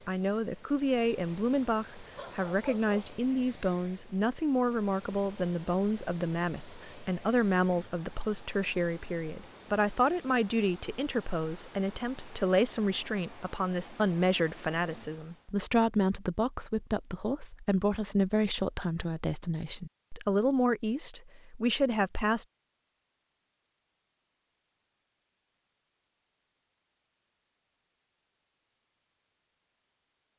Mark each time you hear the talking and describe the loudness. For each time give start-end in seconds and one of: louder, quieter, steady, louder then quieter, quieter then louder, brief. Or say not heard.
0.1-22.4 steady.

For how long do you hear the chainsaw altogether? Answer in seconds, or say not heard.
not heard.